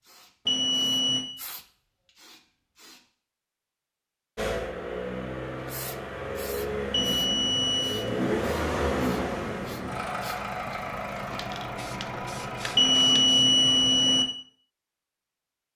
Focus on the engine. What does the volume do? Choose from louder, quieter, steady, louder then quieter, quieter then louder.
louder then quieter.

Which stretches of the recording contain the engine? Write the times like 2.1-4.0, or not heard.
4.3-13.3.